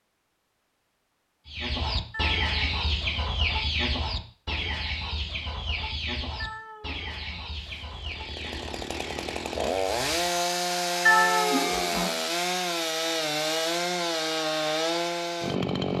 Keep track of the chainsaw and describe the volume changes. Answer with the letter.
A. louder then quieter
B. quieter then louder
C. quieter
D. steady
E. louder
E.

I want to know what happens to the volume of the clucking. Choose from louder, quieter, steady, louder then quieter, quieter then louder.
quieter.